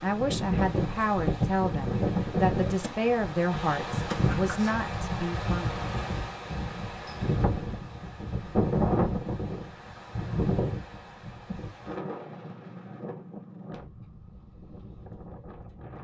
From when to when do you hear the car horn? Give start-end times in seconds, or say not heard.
not heard.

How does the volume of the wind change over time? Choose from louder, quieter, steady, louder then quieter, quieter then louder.
quieter.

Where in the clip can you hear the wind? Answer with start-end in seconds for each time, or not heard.
0.0-15.9.